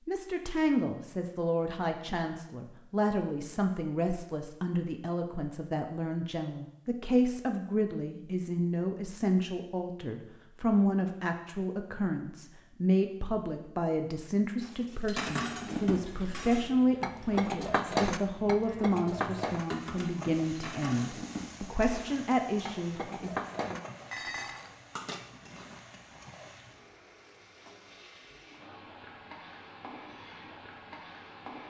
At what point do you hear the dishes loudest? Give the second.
18 s.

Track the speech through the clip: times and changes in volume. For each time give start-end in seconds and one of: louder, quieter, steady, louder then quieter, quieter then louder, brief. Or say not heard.
0.1-23.4 steady.